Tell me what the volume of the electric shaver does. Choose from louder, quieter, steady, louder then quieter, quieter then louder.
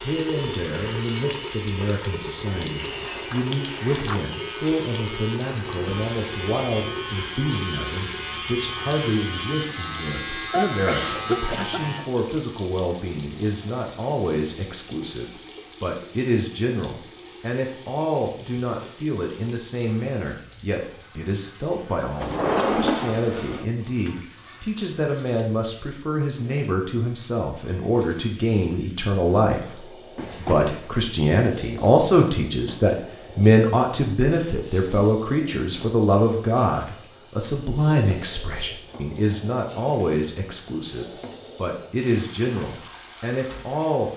louder.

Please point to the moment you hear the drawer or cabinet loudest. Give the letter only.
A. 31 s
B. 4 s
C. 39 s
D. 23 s
D.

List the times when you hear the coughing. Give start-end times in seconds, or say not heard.
10.5-11.8.